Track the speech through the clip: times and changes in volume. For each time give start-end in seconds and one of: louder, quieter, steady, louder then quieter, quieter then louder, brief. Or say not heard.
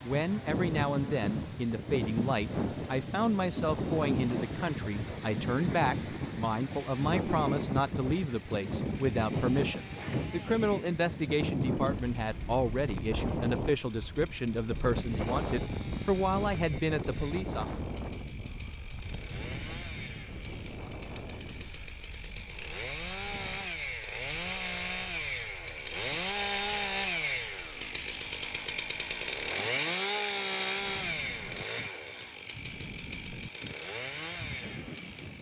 0.0-17.8 steady.